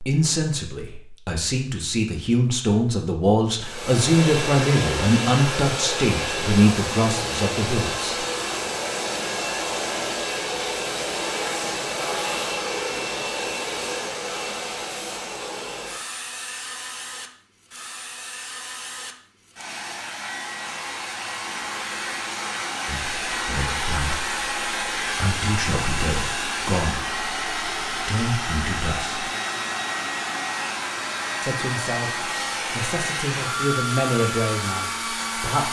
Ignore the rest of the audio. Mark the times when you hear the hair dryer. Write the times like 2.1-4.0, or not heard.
3.5-35.6.